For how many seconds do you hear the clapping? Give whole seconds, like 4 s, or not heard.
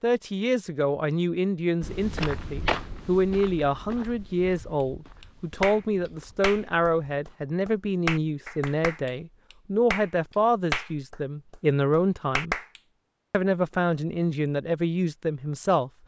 7 s.